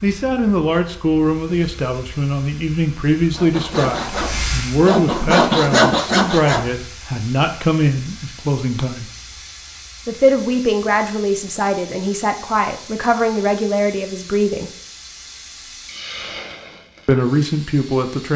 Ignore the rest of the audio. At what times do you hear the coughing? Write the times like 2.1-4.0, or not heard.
not heard.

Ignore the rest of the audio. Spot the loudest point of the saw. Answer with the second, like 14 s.
6 s.